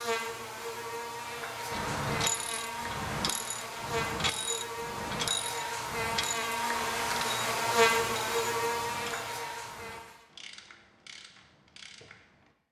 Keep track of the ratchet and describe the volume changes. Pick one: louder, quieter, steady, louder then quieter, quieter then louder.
quieter.